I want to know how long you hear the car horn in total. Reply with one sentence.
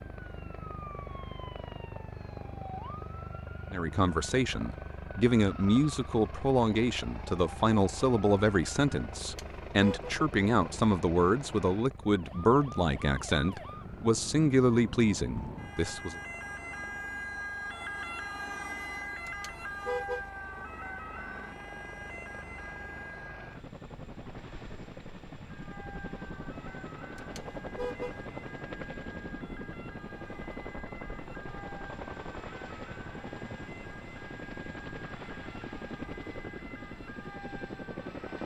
You can hear the car horn for 3 seconds altogether.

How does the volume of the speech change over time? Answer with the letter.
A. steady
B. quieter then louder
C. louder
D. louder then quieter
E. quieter
A.